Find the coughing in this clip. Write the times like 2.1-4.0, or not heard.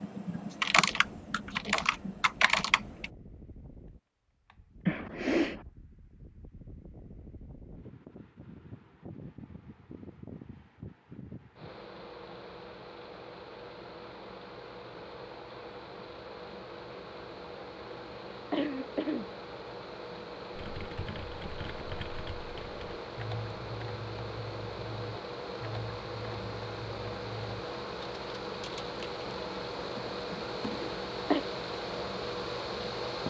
4.8-5.7, 18.0-19.2, 30.3-31.4.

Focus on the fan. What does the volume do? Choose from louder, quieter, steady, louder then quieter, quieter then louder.
louder.